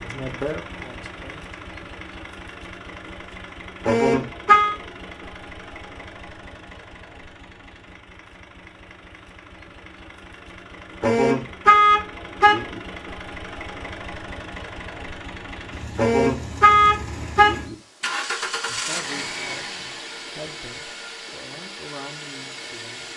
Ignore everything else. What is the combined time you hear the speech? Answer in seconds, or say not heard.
6 s.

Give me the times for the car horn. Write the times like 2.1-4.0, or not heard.
3.9-4.8, 11.0-12.8, 15.9-17.8.